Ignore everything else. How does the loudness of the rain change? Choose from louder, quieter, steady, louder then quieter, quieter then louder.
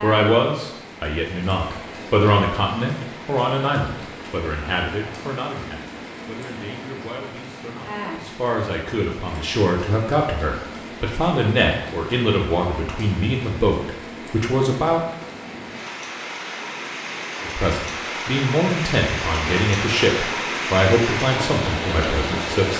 louder.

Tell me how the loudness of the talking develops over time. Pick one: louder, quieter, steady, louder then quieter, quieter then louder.
quieter then louder.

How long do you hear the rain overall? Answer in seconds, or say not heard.
23 s.